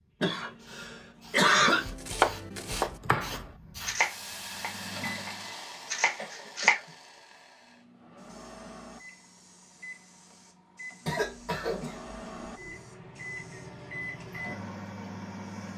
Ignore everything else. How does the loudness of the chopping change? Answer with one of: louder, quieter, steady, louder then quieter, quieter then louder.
quieter then louder.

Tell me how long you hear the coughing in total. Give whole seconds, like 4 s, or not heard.
4 s.